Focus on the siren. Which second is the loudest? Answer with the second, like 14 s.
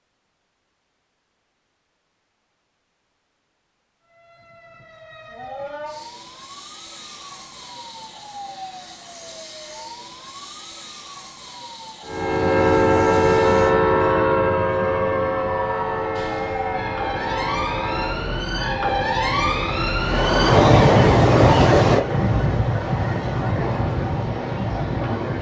21 s.